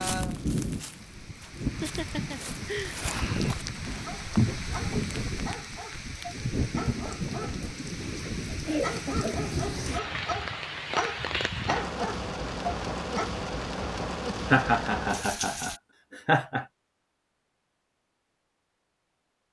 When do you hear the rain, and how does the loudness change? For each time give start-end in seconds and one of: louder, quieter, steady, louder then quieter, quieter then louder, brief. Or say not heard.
0.0-15.8 steady.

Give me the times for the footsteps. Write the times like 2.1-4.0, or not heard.
0.0-5.4.